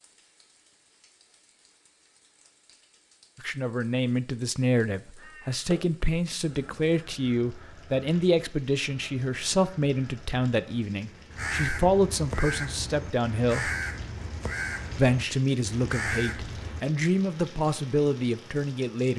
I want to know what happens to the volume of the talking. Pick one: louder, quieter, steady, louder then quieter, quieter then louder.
steady.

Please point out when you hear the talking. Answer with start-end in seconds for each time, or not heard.
3.4-13.7, 14.9-19.1.